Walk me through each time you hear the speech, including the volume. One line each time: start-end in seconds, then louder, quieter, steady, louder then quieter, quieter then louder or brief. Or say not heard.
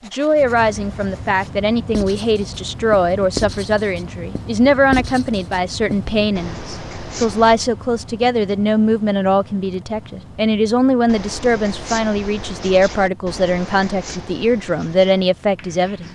0.1-16.1 steady.